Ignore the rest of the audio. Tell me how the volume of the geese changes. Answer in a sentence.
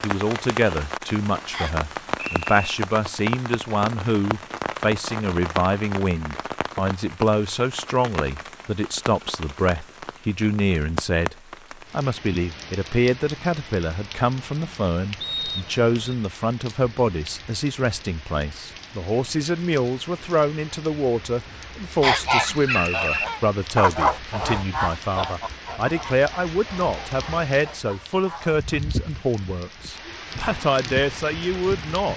The loudness of the geese goes up, then down.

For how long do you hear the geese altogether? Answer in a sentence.
You can hear the geese for 7 seconds altogether.